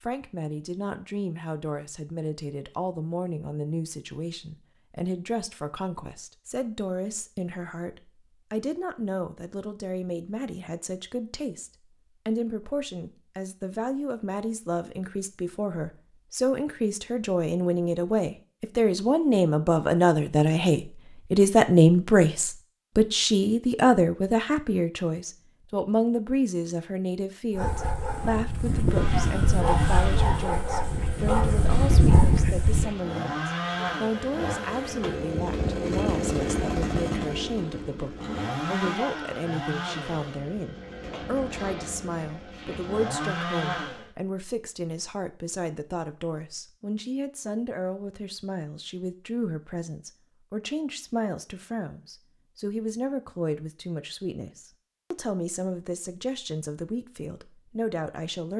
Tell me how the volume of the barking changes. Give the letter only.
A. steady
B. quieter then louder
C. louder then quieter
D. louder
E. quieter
D.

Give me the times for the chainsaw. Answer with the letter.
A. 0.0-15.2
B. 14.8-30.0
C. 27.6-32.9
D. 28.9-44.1
D.